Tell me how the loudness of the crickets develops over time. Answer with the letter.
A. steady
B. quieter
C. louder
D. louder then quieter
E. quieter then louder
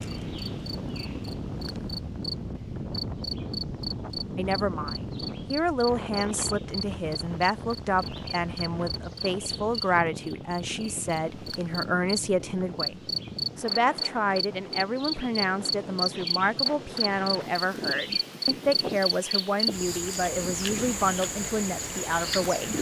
C.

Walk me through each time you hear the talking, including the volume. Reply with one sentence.
The talking can be heard from 4.3 to 22.7 s, at a steady volume.